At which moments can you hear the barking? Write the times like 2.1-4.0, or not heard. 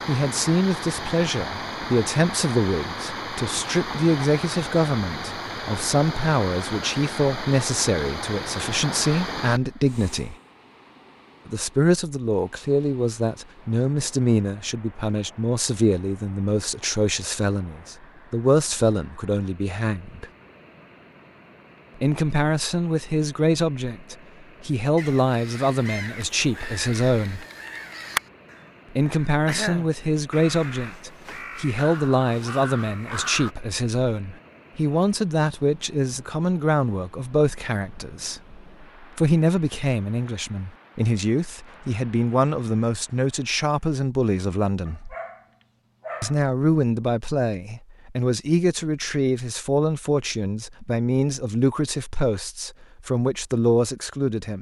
44.9-46.5.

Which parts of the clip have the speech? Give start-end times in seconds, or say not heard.
0.1-10.3, 11.4-20.3, 22.0-27.4, 28.9-45.1, 46.2-54.5.